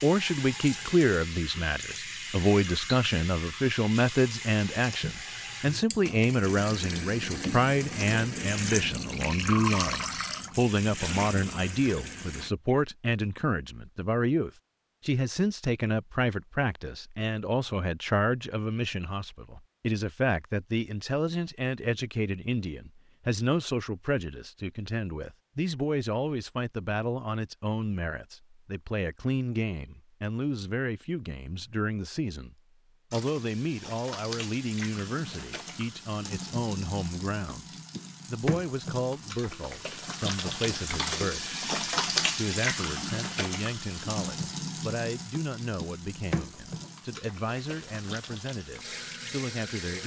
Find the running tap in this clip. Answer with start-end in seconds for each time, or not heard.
0.0-12.5, 33.1-50.0.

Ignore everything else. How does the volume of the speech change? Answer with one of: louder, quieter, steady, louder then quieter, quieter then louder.
quieter.